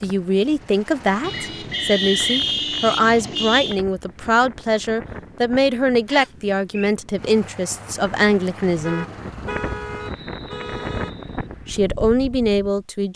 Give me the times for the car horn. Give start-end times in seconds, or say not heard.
1.2-3.8, 8.6-11.2.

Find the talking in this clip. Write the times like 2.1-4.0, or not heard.
0.0-9.1, 11.7-13.1.